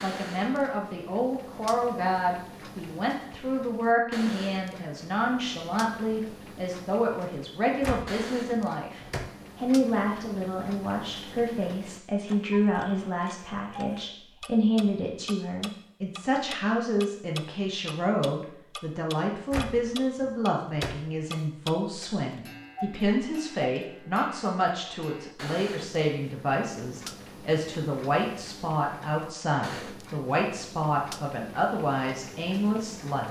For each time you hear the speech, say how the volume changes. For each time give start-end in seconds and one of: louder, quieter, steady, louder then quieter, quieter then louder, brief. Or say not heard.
0.0-33.2 steady.